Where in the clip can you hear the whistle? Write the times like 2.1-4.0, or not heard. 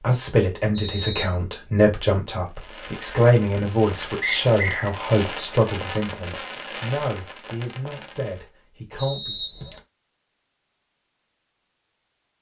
0.7-1.4, 4.2-5.0, 8.9-9.8.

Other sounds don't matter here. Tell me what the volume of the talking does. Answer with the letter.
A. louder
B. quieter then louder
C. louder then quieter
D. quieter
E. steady
D.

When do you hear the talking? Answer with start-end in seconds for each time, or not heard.
0.0-9.3.